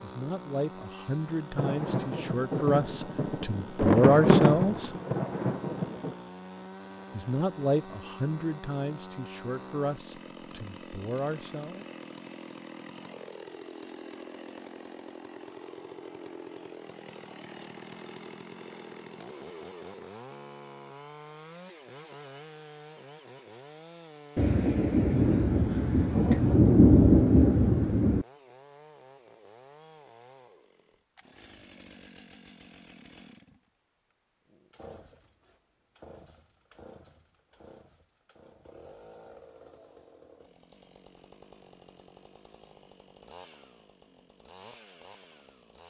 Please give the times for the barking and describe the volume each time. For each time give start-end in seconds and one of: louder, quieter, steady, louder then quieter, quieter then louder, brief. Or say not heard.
not heard.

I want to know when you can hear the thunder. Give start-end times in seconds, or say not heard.
1.6-6.2, 24.4-28.2.